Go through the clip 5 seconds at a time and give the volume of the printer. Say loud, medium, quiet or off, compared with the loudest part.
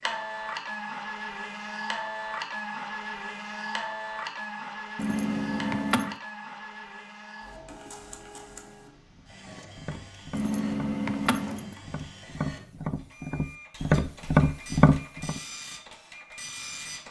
loud, medium, quiet, medium.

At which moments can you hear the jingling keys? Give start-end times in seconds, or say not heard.
5.0-6.2, 10.3-11.8.